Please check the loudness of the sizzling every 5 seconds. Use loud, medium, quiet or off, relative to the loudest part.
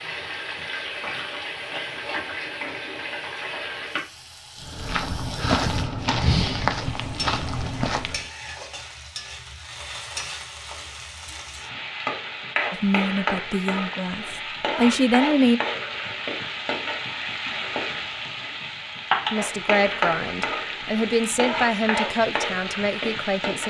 medium, medium, loud, loud, loud.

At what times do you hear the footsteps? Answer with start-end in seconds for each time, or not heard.
4.6-8.2.